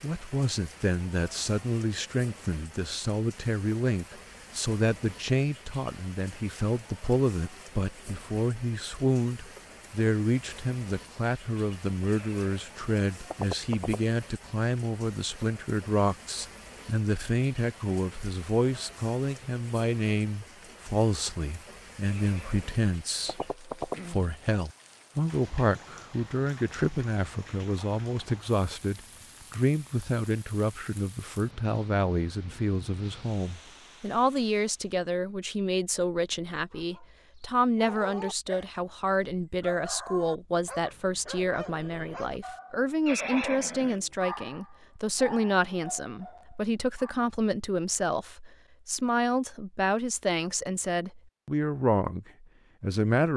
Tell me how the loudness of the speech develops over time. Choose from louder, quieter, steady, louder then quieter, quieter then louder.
steady.